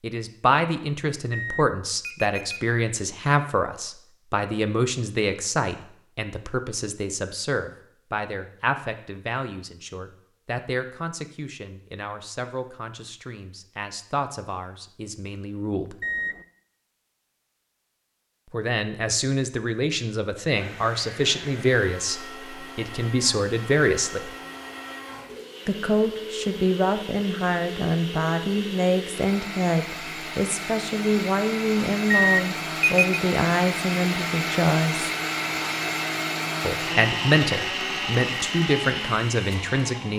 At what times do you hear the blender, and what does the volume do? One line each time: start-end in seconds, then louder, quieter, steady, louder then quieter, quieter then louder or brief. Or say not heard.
20.5-40.1 louder.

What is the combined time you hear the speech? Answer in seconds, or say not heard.
35 s.